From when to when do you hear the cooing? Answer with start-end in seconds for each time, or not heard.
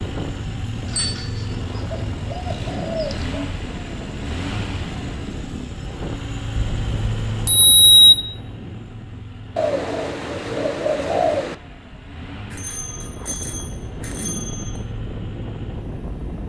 0.8-3.4, 9.6-11.6.